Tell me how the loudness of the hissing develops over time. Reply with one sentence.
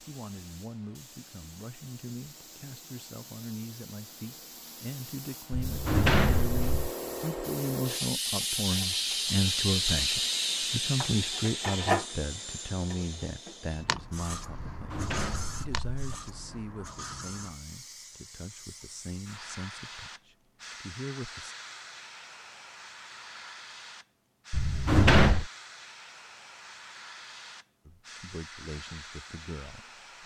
The loudness of the hissing goes up, then down.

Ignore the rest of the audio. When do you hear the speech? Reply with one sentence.
You can hear the speech from 0.1 to 21.6 s and from 27.9 to 30.2 s.